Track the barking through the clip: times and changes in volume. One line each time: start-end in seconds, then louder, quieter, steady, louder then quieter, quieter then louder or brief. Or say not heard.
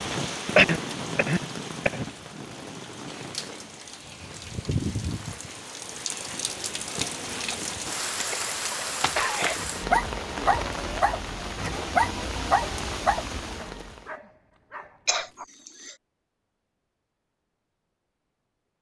9.6-15.4 quieter.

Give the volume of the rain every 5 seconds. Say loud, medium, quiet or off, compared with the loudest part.
loud, loud, loud, off.